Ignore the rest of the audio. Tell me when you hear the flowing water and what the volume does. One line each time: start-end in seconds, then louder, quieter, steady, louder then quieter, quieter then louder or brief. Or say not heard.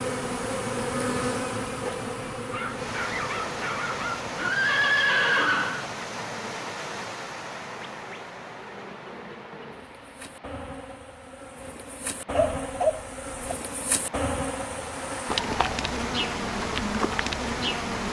2.6-18.0 quieter then louder.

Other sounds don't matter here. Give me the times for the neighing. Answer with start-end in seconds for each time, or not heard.
4.4-5.8.